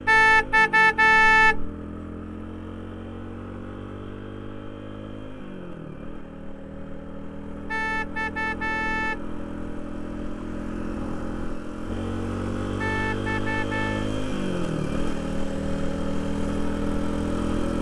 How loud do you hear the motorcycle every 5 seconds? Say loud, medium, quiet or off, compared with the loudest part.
medium, medium, loud, loud.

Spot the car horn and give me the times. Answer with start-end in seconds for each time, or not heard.
0.1-1.8, 7.7-9.3, 12.8-14.1.